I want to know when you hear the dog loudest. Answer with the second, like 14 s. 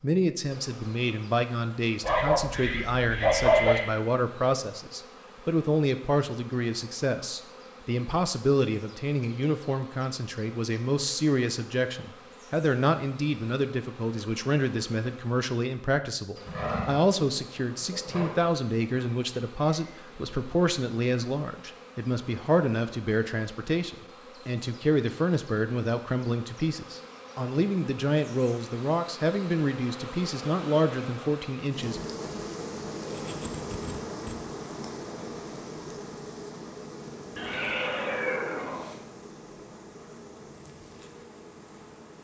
3 s.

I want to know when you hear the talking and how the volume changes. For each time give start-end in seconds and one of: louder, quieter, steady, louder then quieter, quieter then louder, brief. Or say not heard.
0.0-32.0 steady.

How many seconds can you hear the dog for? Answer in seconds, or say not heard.
2 s.